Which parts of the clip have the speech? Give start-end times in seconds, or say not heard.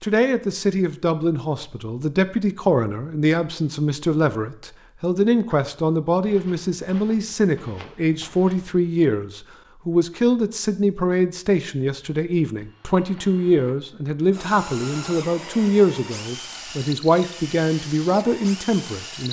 0.0-19.2.